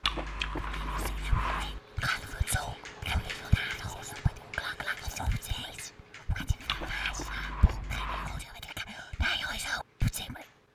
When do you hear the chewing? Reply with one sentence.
You can hear the chewing from 0.0 to 1.8 s and from 6.7 to 8.4 s.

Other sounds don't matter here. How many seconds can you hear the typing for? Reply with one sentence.
You can't hear the typing here.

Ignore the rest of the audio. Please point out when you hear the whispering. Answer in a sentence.
You can hear the whispering from 0.6 to 10.4 s.